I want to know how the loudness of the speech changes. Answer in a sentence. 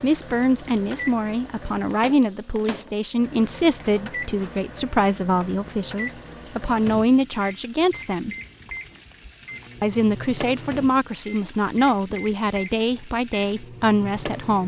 The loudness of the speech stays about the same.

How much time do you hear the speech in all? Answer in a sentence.
You can hear the speech for 13 seconds altogether.